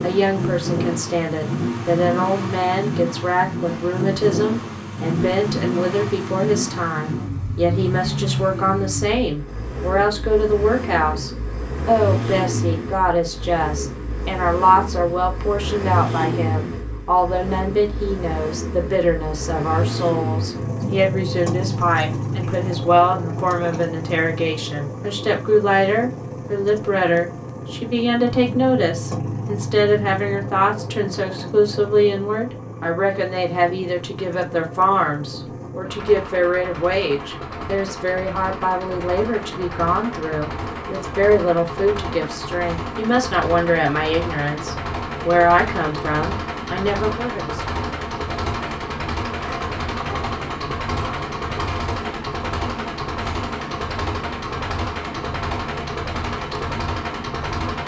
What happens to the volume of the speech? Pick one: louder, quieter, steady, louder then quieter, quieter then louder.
steady.